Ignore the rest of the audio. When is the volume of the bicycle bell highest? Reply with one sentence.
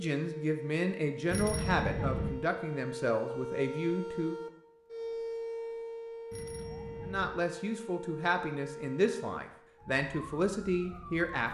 The volume of the bicycle bell peaks at 2 seconds.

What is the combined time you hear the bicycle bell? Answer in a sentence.
The bicycle bell can be heard for 2 seconds in total.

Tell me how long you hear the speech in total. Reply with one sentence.
You can hear the speech for 9 seconds altogether.